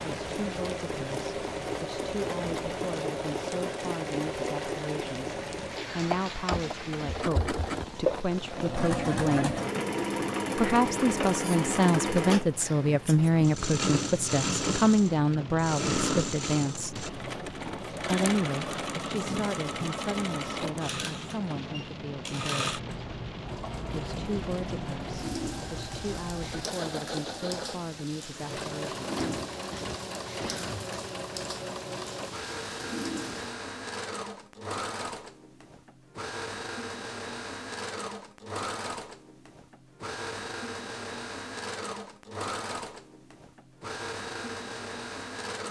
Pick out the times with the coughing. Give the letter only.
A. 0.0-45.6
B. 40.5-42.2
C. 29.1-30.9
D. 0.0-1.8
C.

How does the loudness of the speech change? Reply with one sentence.
The volume of the speech goes up, then down.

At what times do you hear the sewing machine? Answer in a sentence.
You can hear the sewing machine from 0.0 to 45.6 s.